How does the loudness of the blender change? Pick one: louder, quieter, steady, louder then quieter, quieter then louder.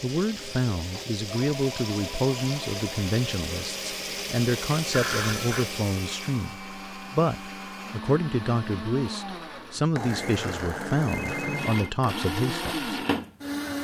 louder.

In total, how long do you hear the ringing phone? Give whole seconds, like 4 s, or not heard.
3 s.